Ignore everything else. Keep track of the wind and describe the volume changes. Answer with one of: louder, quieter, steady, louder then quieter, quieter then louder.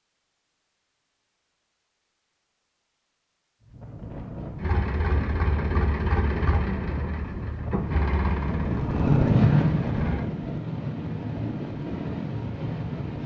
louder then quieter.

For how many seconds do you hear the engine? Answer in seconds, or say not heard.
6 s.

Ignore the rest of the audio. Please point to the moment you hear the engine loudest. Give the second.
6 s.